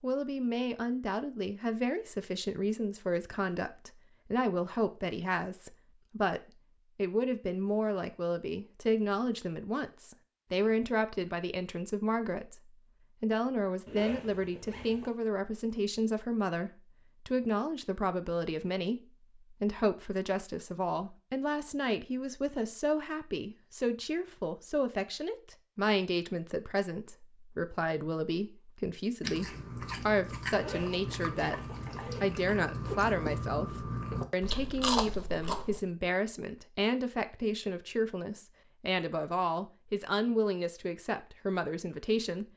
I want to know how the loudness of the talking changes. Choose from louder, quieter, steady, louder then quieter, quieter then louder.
steady.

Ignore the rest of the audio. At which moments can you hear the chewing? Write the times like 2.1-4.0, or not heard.
29.2-35.9.